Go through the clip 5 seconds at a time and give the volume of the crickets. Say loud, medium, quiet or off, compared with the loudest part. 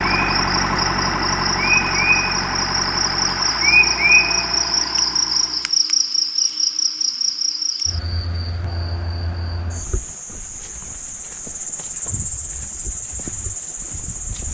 loud, loud, medium.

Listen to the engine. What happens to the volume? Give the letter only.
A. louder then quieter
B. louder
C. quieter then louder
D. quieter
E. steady
D.